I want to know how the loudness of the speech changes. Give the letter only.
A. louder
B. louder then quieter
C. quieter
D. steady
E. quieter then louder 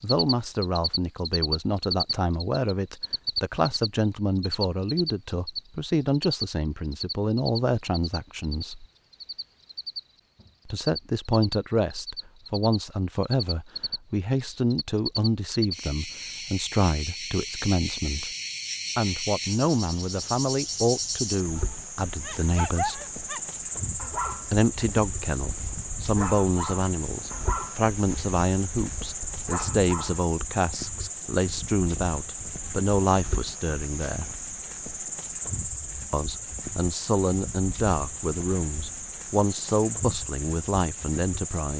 D.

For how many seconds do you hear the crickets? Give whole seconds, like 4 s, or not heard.
42 s.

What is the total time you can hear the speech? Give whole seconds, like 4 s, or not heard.
36 s.